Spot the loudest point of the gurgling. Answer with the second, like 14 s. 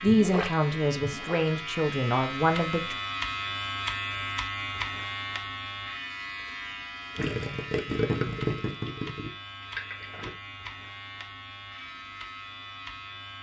8 s.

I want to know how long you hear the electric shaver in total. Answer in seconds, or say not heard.
13 s.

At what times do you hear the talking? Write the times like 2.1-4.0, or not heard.
0.0-3.0.